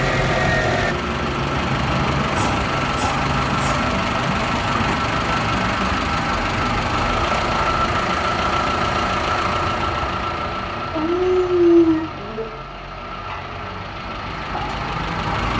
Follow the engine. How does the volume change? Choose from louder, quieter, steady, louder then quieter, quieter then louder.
quieter.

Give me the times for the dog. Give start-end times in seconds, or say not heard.
2.4-3.9, 10.9-12.4.